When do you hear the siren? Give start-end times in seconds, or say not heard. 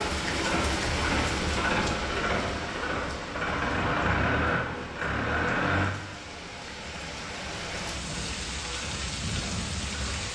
not heard.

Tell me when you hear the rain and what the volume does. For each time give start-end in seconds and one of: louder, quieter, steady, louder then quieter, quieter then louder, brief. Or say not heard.
0.0-10.2 quieter then louder.